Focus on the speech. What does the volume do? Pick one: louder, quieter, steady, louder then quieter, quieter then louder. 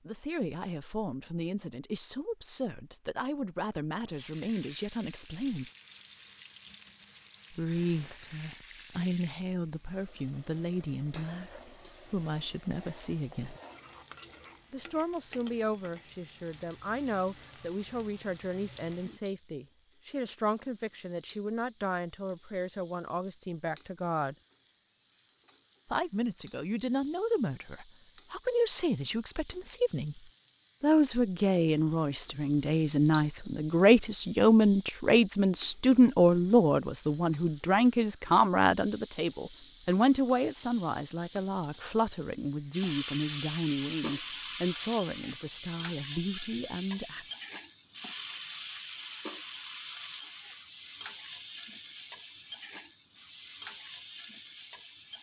louder then quieter.